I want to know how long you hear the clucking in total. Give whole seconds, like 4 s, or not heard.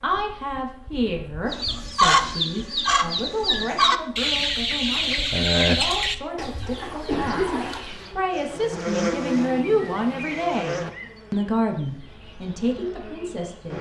7 s.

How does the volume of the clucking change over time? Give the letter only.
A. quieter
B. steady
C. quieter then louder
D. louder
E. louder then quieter
A.